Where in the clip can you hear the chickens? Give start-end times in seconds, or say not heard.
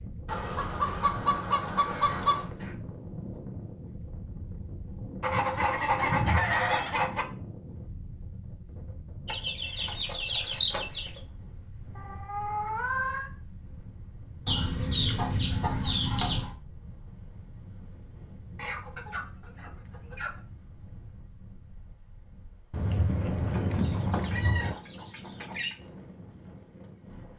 0.2-2.5, 5.2-7.2, 9.2-11.2, 14.4-16.6, 18.6-20.4, 23.8-25.8.